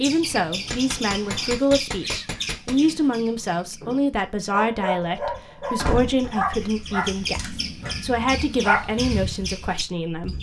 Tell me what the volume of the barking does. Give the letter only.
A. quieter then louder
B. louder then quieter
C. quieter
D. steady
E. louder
A.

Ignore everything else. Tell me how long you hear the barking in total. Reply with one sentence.
The barking can be heard for 5 seconds in total.